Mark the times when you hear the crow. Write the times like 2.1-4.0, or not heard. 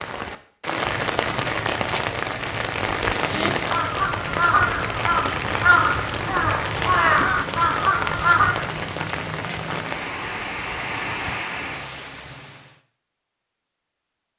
3.2-8.7.